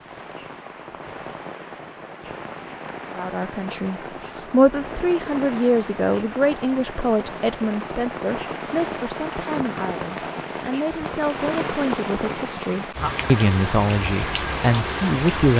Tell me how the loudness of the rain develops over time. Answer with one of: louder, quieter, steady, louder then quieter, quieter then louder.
louder.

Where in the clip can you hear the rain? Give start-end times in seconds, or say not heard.
0.0-15.5.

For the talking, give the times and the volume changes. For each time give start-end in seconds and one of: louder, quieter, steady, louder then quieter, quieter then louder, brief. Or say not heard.
3.1-15.5 quieter then louder.